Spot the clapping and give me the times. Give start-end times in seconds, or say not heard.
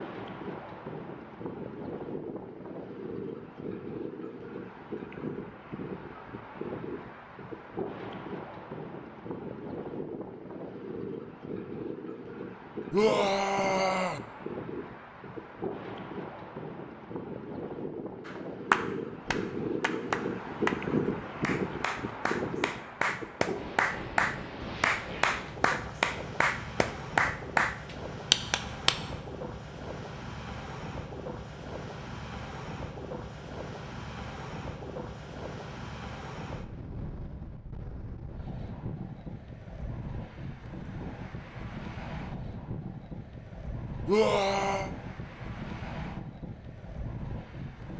18.2-28.9.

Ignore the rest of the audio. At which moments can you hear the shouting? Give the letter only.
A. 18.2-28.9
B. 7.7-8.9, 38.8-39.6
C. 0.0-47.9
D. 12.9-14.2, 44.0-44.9
D.